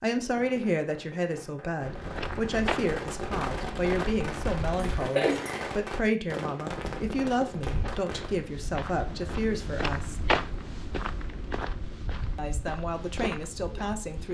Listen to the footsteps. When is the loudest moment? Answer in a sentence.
The loudest moment of the footsteps is at 10 seconds.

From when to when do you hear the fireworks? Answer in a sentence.
The fireworks can be heard from 0.0 to 8.4 s.